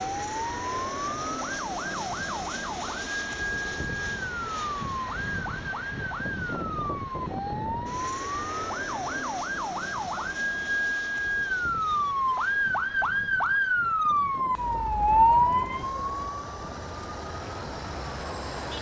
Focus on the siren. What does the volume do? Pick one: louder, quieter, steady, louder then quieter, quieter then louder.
louder.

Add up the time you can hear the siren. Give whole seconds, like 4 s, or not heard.
19 s.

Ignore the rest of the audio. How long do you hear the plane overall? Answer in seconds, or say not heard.
19 s.